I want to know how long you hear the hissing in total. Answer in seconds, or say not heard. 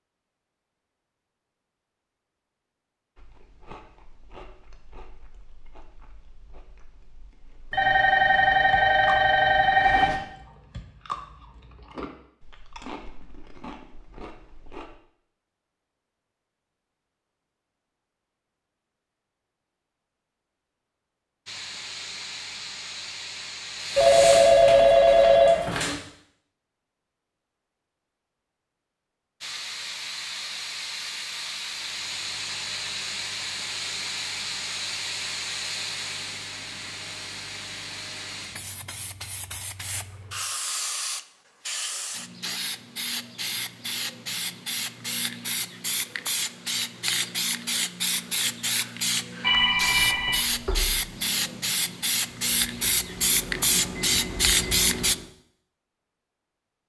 30 s.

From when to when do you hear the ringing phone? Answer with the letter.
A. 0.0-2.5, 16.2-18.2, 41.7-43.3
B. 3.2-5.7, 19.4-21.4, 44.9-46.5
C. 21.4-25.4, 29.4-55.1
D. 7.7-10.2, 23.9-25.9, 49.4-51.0
D.